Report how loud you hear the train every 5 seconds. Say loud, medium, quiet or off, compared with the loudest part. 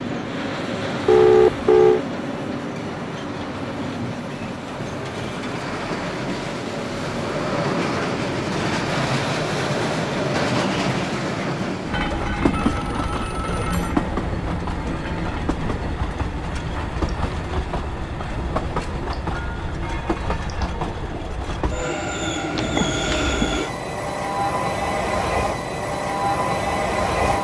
medium, loud, loud, medium, loud, loud.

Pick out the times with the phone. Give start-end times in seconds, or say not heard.
1.1-2.0, 12.6-13.9, 22.6-23.6.